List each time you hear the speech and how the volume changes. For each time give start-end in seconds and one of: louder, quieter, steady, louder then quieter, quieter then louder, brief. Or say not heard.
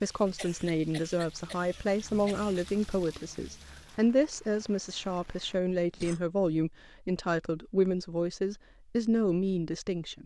0.0-10.2 steady.